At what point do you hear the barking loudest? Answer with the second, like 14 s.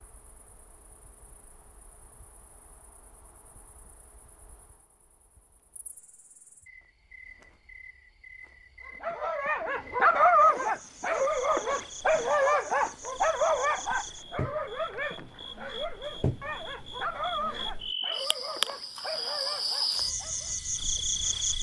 10 s.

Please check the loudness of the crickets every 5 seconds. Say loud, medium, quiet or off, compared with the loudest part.
quiet, quiet, quiet, loud, loud.